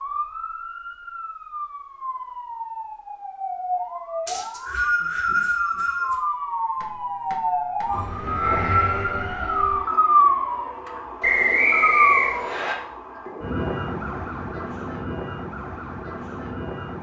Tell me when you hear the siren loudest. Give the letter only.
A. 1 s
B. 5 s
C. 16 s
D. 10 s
D.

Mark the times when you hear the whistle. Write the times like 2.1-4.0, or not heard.
4.2-6.2, 11.2-12.8.